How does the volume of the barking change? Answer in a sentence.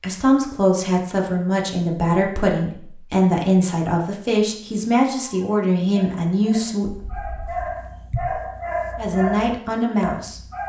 The loudness of the barking goes up.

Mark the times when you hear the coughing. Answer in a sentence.
You can hear the coughing from 6.9 to 8.4 s.